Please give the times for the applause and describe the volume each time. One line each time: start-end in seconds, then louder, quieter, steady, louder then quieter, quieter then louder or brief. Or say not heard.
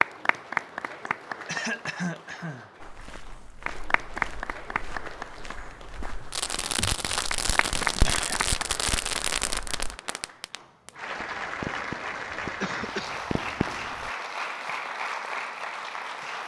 0.0-16.4 steady.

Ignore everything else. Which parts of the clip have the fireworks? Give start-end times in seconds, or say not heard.
6.3-14.1.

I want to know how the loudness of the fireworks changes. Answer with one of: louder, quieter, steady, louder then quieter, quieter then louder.
quieter.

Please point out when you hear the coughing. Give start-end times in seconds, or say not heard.
1.1-2.7, 6.8-8.3, 12.6-13.2.